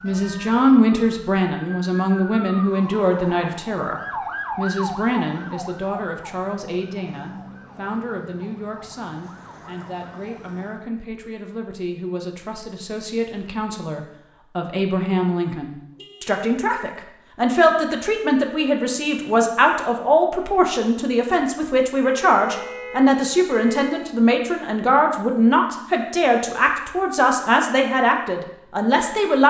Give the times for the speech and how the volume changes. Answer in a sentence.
The speech can be heard from 0.0 to 29.4 s, getting quieter then louder.